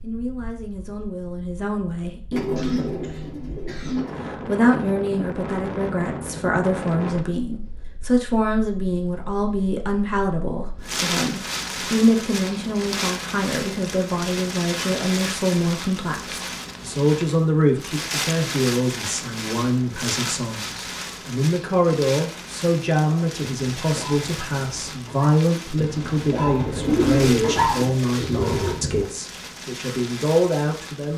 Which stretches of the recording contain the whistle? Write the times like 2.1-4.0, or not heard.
not heard.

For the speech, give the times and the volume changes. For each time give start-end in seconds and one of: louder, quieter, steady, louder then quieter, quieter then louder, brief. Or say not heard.
0.0-2.4 brief
4.3-31.1 steady.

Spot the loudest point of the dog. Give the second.
28 s.